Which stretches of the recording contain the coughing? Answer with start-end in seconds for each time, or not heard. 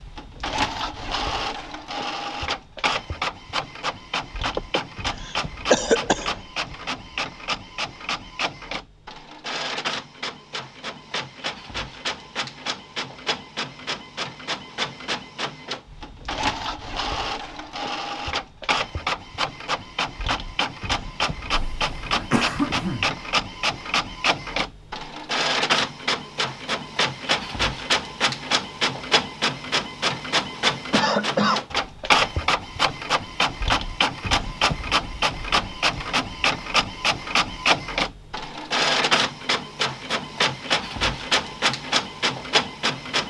4.5-6.3, 21.5-23.1, 30.9-31.6.